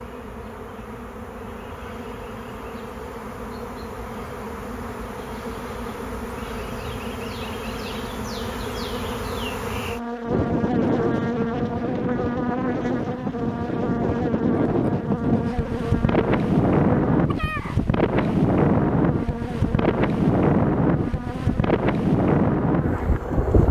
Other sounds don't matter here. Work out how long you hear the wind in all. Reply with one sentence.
The wind can be heard for 13 seconds in total.